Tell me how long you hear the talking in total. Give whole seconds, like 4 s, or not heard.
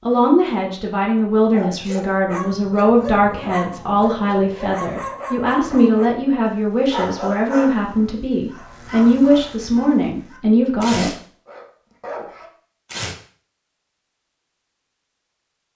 11 s.